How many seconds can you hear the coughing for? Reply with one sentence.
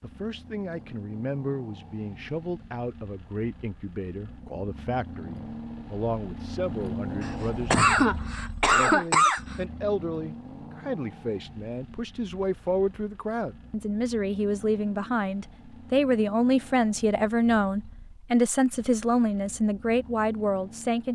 You can hear the coughing for 2 seconds altogether.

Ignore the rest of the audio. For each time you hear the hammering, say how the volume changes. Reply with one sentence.
You can't hear the hammering here.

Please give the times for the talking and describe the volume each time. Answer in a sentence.
You can hear the talking from 0.0 to 21.1 s, getting louder.